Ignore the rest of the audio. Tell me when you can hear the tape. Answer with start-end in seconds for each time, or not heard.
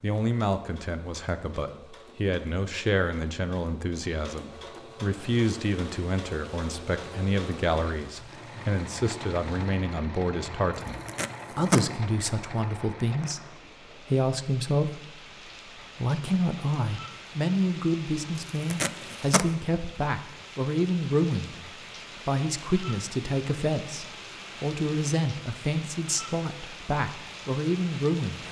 10.8-11.8, 18.4-19.5.